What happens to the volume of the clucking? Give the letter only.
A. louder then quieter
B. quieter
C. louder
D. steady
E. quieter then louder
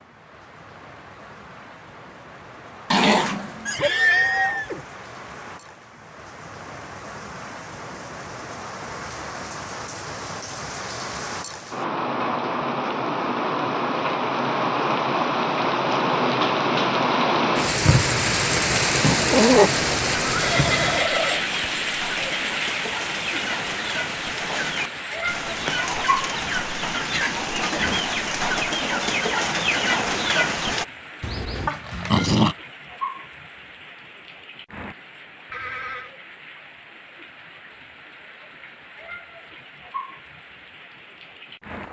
C.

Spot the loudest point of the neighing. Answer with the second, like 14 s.
4 s.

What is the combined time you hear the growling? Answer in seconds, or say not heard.
3 s.